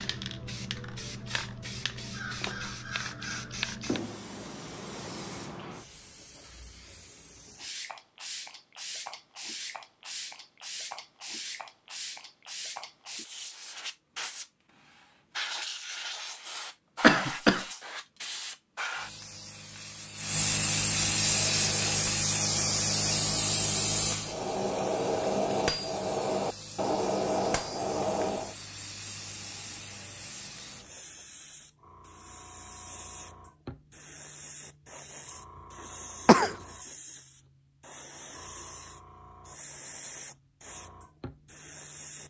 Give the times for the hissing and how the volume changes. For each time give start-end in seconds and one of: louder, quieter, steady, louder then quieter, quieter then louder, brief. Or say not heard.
0.0-42.2 louder then quieter.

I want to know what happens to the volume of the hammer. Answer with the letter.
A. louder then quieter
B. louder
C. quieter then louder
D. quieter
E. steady
B.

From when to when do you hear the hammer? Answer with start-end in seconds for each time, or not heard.
21.4-28.6.